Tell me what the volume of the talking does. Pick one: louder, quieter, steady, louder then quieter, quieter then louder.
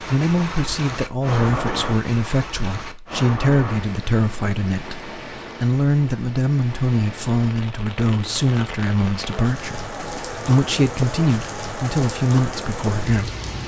steady.